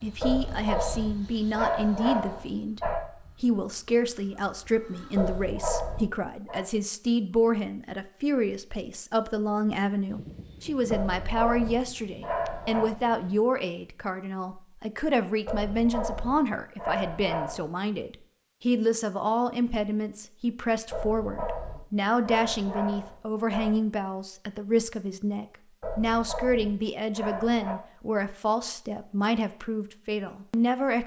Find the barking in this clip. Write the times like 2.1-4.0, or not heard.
0.2-3.1, 5.2-6.7, 10.9-12.9, 15.4-17.7, 20.9-23.8, 25.8-27.8.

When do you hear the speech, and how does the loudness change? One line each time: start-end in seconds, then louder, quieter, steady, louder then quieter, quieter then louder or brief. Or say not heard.
0.0-2.8 brief
3.4-31.0 steady.